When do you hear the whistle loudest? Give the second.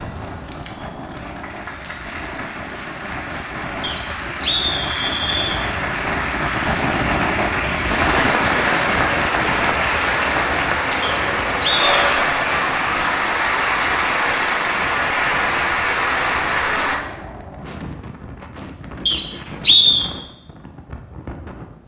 20 s.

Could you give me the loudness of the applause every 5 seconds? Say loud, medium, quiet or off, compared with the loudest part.
quiet, loud, loud, loud, off.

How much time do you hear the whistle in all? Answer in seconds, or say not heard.
4 s.